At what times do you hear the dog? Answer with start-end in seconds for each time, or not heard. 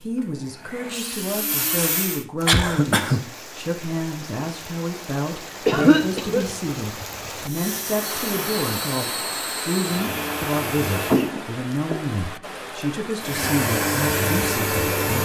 not heard.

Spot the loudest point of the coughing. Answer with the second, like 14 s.
6 s.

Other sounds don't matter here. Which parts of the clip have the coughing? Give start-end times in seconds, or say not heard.
2.4-3.2, 5.7-6.5, 10.9-11.9.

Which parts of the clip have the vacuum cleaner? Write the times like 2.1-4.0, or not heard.
0.0-2.2, 7.4-11.3, 13.2-15.1.